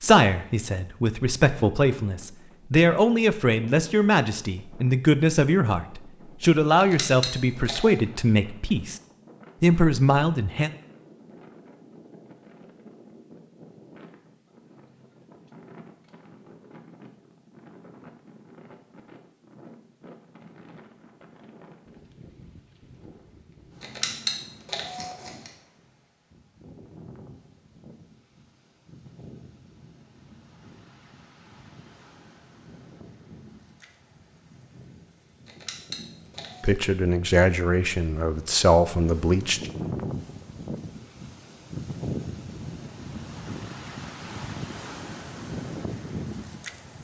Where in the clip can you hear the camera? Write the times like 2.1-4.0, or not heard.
6.8-8.0, 23.8-25.5, 35.5-36.7.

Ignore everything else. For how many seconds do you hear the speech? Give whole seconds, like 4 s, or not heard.
13 s.